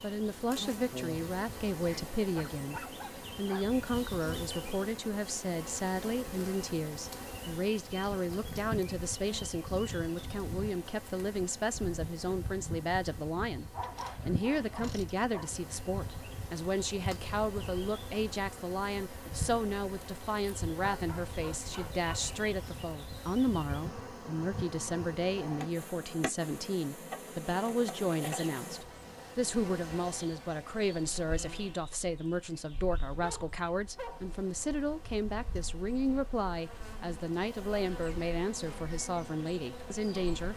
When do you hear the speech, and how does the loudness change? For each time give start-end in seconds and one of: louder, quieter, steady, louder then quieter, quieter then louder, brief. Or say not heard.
0.0-40.5 steady.